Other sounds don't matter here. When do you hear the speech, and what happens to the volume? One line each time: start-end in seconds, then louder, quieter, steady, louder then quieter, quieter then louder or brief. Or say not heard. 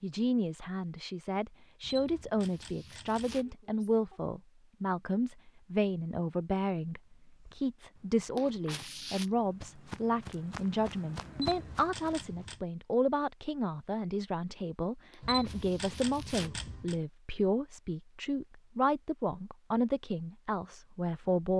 0.0-21.5 steady.